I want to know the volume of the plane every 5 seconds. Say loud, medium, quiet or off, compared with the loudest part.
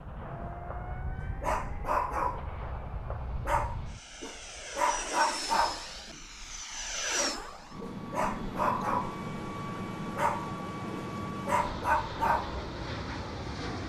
medium, loud, loud.